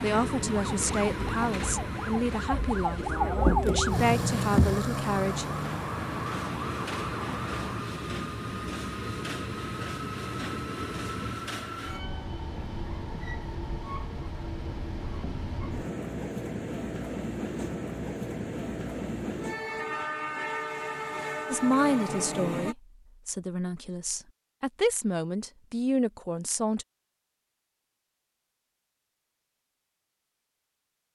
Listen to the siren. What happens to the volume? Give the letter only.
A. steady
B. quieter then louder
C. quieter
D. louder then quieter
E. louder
D.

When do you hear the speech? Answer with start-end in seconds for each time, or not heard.
0.0-5.5, 21.5-26.9.